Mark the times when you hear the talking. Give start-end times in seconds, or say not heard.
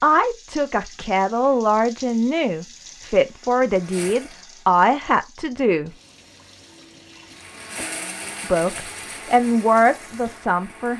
0.0-5.9, 8.4-10.9.